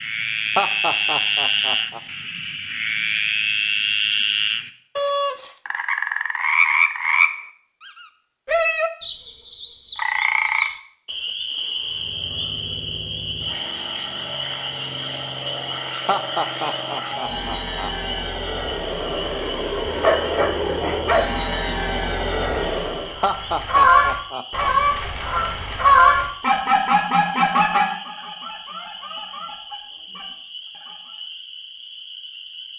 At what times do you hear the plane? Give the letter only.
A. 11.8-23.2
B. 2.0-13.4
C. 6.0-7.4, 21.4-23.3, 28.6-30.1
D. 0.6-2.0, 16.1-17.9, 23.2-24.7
A.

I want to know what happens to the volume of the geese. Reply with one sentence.
The volume of the geese goes down.